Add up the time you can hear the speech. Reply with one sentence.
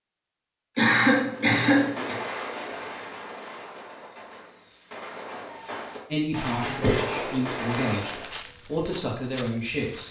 You can hear the speech for 4 seconds altogether.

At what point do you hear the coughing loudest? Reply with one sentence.
The loudest moment of the coughing is at 1 second.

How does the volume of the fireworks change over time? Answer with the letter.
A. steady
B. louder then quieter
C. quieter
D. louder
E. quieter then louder
E.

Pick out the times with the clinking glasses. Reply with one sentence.
You can't hear the clinking glasses here.